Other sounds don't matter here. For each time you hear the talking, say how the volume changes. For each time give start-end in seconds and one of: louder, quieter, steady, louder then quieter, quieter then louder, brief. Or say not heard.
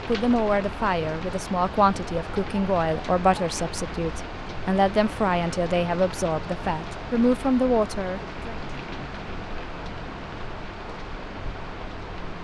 0.1-8.6 steady.